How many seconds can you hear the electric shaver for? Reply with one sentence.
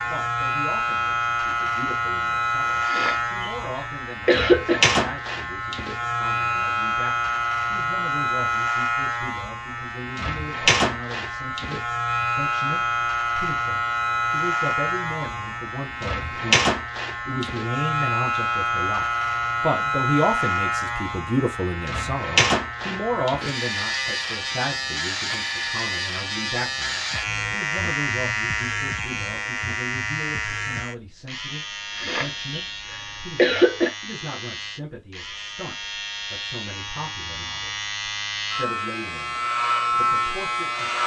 The electric shaver can be heard for 41 seconds in total.